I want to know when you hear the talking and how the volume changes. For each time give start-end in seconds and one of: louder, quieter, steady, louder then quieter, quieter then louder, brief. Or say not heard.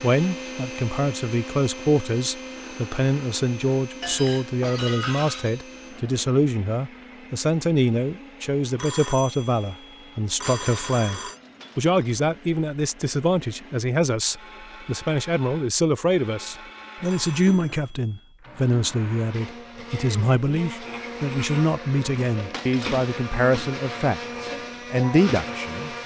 0.0-25.9 steady.